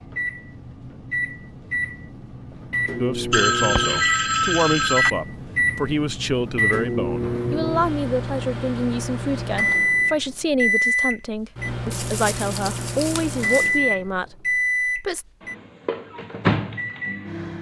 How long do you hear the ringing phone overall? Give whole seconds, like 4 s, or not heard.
2 s.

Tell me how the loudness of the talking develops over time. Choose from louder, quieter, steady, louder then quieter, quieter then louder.
steady.